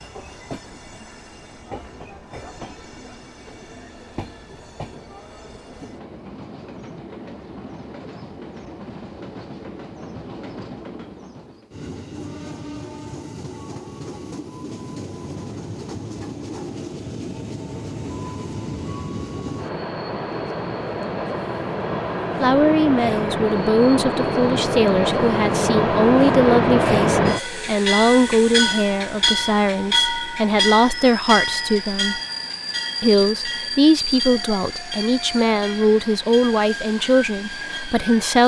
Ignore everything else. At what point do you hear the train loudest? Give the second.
27 s.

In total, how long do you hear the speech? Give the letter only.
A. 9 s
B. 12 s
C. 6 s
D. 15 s
D.